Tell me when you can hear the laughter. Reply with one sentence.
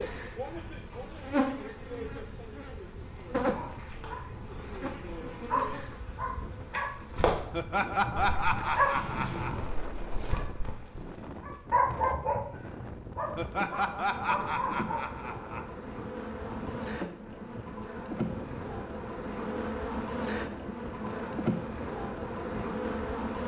The laughter can be heard from 7.5 to 9.7 s and from 13.3 to 15.7 s.